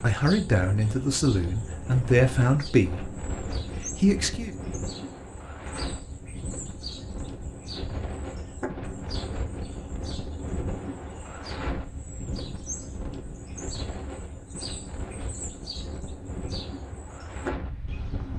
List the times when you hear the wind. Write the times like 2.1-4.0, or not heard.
0.0-18.3.